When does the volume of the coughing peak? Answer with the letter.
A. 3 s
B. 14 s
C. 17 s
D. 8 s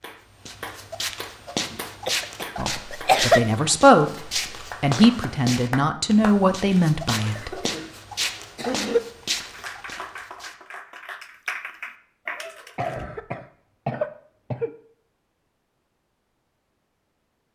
A.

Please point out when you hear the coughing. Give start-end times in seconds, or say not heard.
2.0-3.5, 7.0-9.0, 12.8-14.7.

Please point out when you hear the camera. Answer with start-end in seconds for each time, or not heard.
not heard.